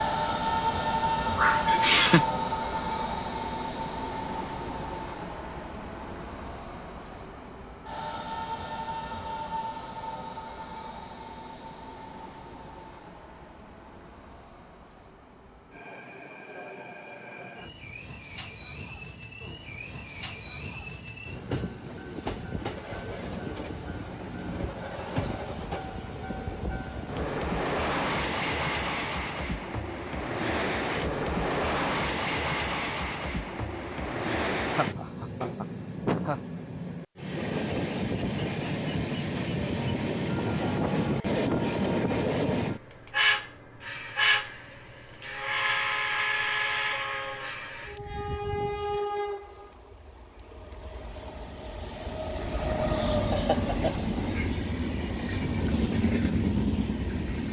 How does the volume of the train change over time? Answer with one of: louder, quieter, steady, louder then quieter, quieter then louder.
quieter then louder.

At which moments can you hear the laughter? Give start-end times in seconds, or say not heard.
1.4-2.2, 34.6-36.5, 53.3-54.0.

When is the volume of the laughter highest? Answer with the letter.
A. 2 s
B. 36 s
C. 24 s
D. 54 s
A.